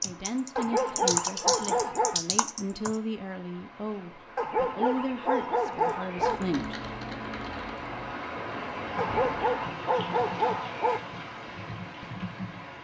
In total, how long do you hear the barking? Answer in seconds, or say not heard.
6 s.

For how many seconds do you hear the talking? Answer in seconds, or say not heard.
7 s.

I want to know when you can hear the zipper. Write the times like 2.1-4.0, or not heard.
not heard.